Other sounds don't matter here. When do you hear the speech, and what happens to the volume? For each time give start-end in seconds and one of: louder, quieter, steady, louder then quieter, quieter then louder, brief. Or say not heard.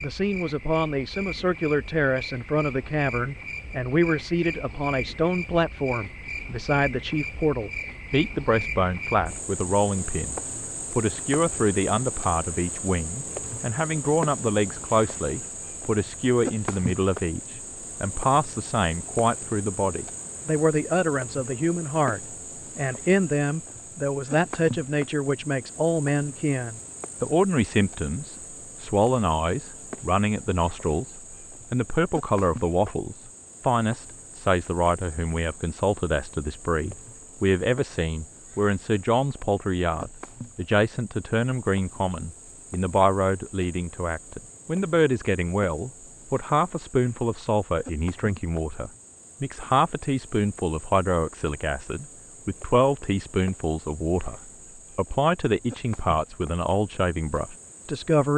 0.0-58.3 steady.